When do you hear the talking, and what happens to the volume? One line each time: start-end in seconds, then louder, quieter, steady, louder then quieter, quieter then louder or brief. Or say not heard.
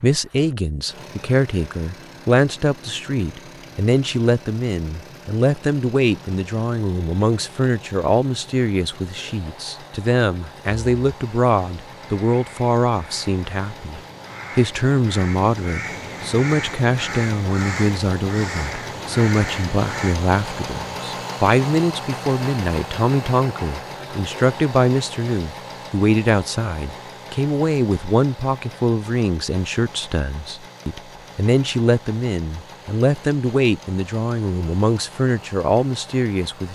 0.0-36.6 steady.